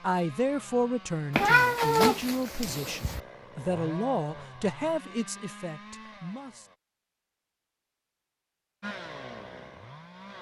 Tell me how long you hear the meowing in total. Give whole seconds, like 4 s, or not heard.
2 s.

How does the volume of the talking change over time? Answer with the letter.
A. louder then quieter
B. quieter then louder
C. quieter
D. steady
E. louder
C.